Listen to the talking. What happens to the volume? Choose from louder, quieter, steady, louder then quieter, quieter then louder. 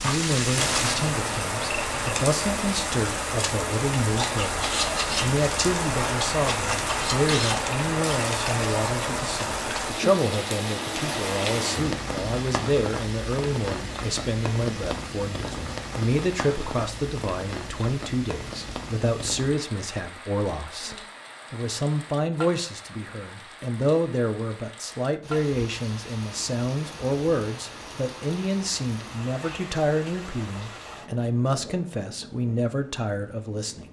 steady.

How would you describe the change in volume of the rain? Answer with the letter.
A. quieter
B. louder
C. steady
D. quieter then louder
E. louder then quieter
A.